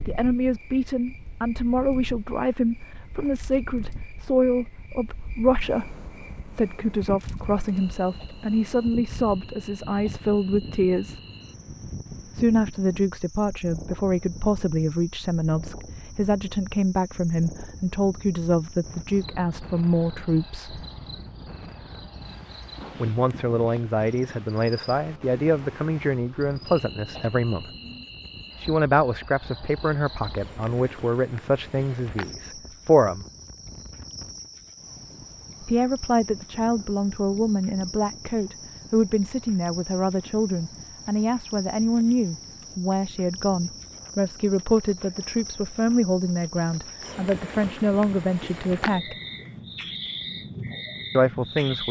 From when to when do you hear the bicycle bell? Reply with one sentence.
The bicycle bell can't be heard in this clip.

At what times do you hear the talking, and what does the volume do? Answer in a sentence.
The talking can be heard from 0.1 to 11.2 s, at a steady volume; from 12.3 to 20.8 s, at a steady volume; from 23.0 to 27.6 s, at a steady volume; from 28.6 to 33.2 s, getting quieter; from 35.6 to 49.1 s, at a steady volume; and briefly from 51.1 to 51.8 s.